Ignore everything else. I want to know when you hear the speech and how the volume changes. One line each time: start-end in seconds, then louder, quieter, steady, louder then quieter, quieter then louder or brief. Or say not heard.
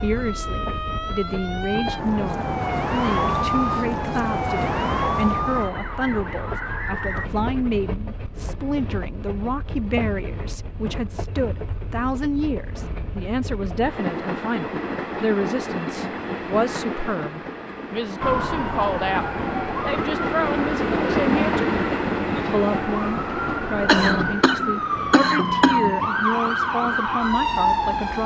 0.0-28.2 steady.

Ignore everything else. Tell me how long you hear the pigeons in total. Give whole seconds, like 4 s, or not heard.
not heard.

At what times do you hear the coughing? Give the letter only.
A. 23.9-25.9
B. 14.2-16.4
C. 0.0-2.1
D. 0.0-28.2
A.